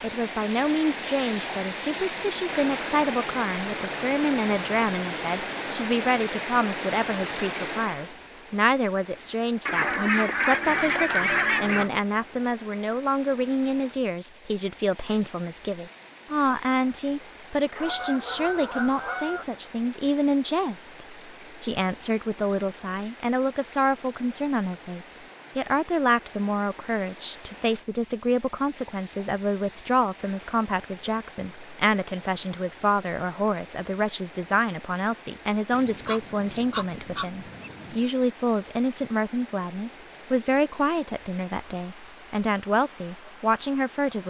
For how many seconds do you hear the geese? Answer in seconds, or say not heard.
6 s.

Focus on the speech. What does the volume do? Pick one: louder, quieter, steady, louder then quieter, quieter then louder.
steady.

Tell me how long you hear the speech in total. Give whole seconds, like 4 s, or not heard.
44 s.